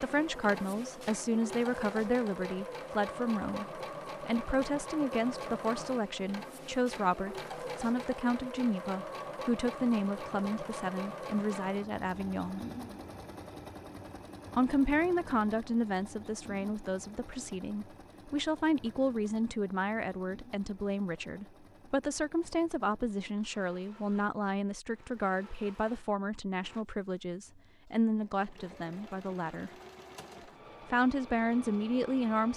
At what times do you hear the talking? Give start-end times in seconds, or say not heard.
0.0-12.6, 14.5-29.7, 30.9-32.5.